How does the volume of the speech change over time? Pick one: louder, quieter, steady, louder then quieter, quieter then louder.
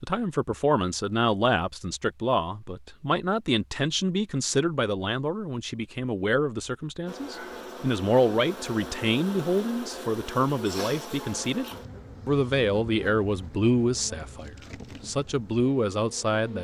steady.